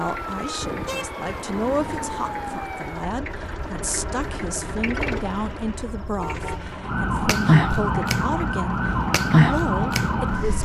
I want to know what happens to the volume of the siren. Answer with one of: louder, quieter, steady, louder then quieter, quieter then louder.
quieter then louder.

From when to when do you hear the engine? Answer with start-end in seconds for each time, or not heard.
0.0-10.6.